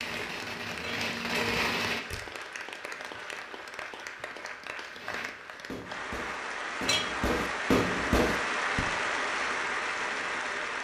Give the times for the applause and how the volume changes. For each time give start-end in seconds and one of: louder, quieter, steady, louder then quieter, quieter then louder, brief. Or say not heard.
0.2-10.7 louder.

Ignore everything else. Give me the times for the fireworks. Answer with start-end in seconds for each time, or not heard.
0.0-2.1, 4.8-8.8.